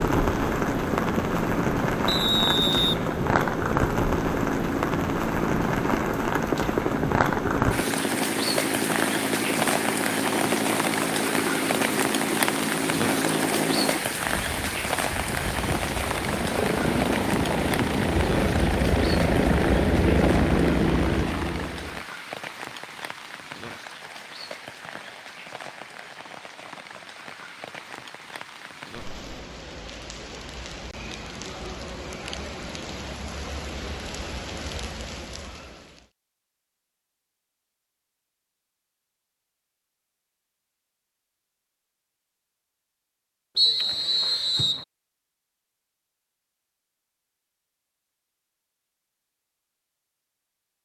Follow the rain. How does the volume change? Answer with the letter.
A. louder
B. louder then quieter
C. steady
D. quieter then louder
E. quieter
E.